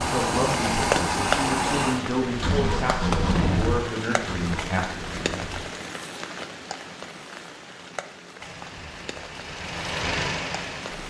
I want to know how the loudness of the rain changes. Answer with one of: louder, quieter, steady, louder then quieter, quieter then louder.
quieter.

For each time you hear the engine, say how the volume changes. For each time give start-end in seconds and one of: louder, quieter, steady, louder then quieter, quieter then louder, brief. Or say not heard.
0.0-5.7 quieter
8.3-11.0 brief.